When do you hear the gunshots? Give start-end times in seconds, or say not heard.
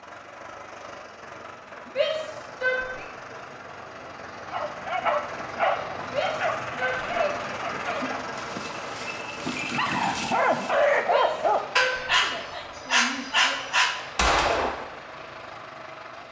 14.2-14.8.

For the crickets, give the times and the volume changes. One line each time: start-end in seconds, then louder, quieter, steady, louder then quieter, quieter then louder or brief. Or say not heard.
not heard.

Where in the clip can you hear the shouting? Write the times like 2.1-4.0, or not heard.
1.9-3.0, 6.0-7.2, 11.0-13.6.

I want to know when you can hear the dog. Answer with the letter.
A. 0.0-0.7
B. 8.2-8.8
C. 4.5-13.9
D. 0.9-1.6
C.